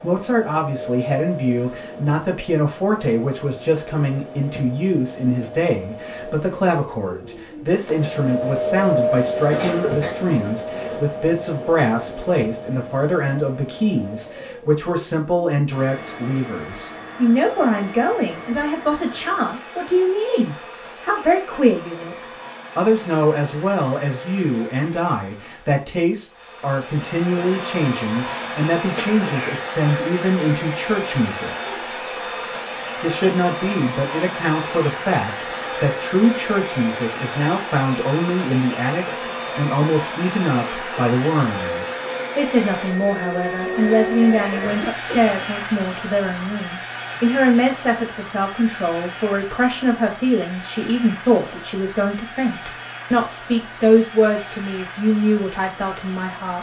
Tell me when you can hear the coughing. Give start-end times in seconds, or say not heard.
9.5-11.1, 28.8-29.6, 44.6-45.4.